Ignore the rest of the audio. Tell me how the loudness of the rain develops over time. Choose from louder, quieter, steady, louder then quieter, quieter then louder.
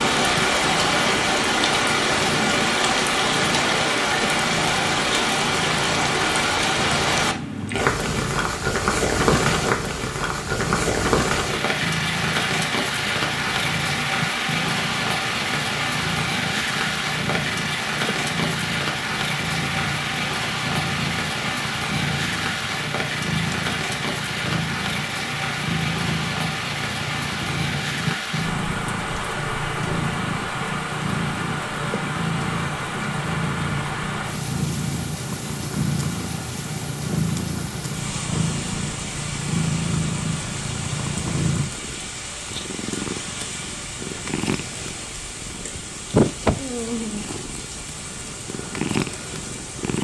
quieter.